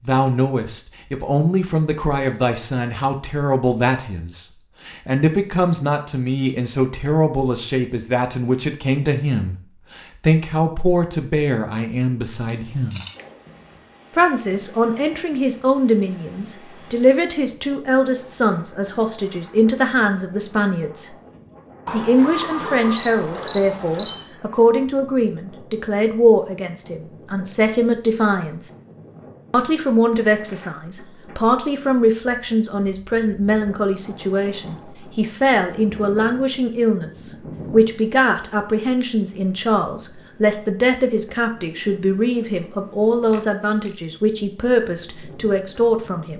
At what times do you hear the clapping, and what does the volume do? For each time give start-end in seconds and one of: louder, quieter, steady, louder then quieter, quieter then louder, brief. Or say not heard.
not heard.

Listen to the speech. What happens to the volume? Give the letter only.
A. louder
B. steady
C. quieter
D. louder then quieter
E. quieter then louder
B.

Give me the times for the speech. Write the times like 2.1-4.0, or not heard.
0.0-13.1, 14.2-21.1, 21.9-28.7, 29.5-46.3.